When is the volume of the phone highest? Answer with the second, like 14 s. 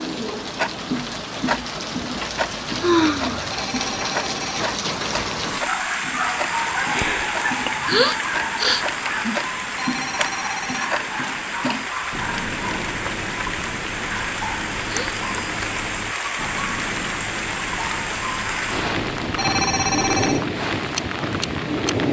20 s.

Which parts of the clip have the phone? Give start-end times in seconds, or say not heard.
3.5-4.5, 9.7-10.9, 19.3-20.4.